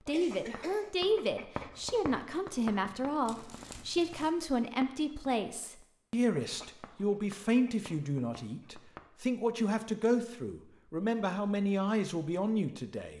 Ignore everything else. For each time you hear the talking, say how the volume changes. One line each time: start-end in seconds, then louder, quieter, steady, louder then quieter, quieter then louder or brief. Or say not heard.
0.1-13.1 steady.